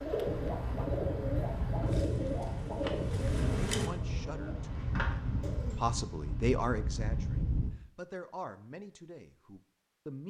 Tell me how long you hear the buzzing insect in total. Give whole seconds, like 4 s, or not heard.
4 s.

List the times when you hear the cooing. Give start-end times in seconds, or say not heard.
0.0-5.8.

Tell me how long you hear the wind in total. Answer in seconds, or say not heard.
8 s.